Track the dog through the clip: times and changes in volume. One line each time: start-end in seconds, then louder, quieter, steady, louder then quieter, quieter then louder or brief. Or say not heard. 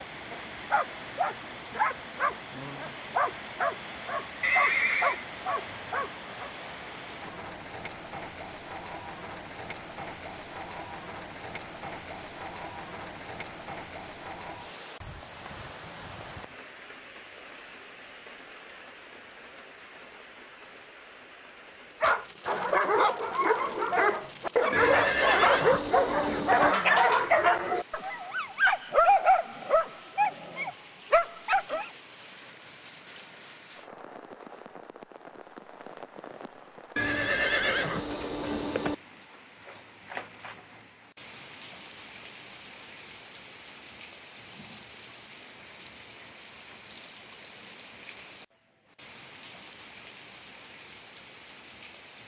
0.0-6.5 steady
22.0-31.9 steady.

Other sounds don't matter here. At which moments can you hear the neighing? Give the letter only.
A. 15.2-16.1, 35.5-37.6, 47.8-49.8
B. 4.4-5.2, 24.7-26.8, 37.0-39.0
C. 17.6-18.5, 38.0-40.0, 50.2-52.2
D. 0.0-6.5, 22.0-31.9
B.